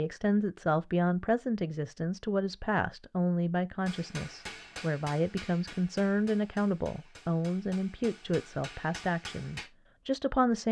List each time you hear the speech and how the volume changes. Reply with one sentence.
The speech can be heard from 0.0 to 10.6 s, at a steady volume.